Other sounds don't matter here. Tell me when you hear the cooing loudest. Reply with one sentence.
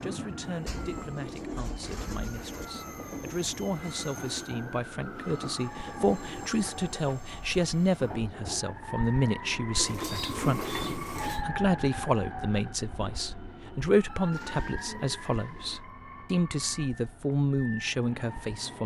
The loudest moment of the cooing is at 11 seconds.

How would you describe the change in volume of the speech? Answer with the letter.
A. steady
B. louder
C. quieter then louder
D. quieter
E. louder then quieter
B.